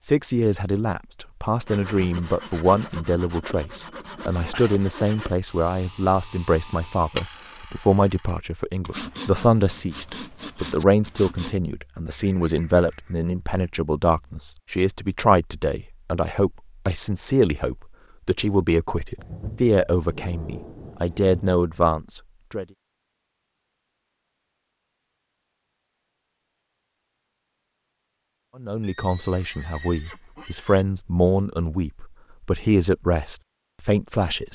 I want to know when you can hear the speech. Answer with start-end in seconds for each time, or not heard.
0.0-22.6, 28.6-34.5.